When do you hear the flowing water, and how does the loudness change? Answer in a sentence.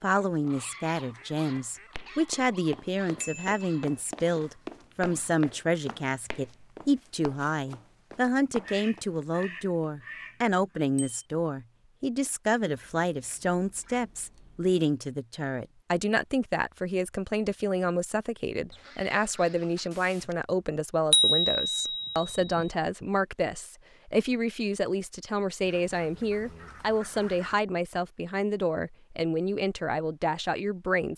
The flowing water can't be heard in this clip.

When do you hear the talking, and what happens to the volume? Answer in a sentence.
The talking can be heard from 0.0 to 31.1 s, at a steady volume.